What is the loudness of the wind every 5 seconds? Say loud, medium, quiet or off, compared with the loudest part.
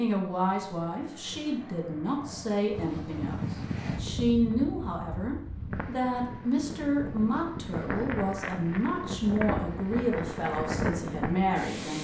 medium, loud, loud.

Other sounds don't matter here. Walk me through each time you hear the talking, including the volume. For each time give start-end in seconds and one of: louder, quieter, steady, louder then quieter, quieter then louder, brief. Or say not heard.
0.0-12.0 steady.